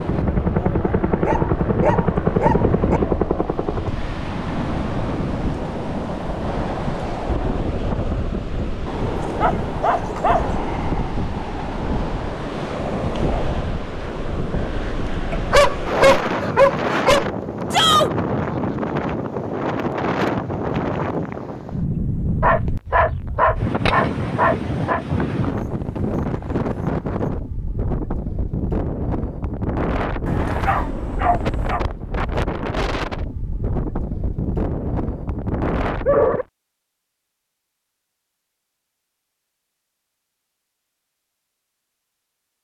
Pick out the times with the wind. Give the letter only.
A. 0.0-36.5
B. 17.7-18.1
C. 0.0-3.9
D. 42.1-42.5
A.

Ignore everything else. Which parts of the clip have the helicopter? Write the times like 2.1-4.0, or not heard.
0.0-3.9.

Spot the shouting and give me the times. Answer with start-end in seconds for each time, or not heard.
17.7-18.1.